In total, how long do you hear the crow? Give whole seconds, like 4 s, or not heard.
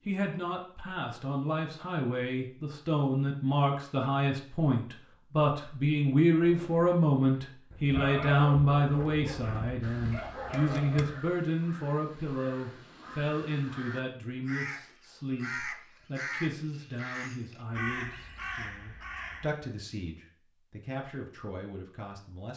10 s.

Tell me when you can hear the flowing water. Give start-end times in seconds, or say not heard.
not heard.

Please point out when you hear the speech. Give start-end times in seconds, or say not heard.
0.1-22.5.